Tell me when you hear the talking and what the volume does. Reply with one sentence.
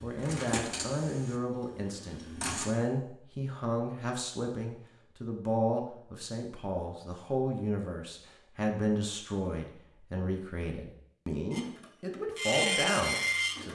The talking can be heard from 0.0 to 13.7 s, at a steady volume.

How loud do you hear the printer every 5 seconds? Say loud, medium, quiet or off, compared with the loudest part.
medium, off, loud.